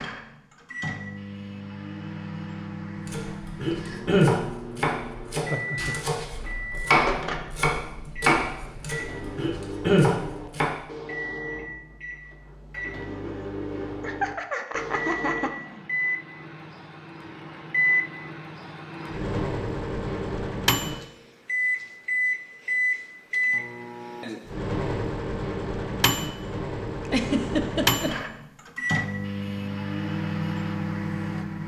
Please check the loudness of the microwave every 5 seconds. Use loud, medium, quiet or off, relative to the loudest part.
medium, medium, medium, loud, loud, loud, loud.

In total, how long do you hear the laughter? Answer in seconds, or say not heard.
4 s.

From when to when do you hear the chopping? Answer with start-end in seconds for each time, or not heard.
3.0-10.8.